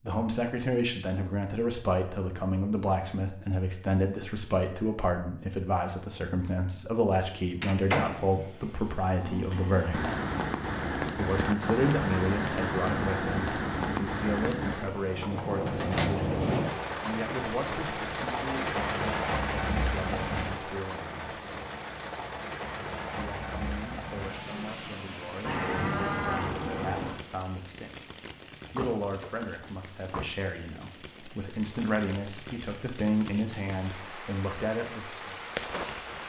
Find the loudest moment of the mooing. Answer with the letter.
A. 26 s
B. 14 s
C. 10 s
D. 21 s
A.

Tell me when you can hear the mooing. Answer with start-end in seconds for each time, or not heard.
8.2-10.2, 25.4-27.2.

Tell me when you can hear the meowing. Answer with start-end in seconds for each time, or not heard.
not heard.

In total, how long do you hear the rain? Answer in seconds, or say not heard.
26 s.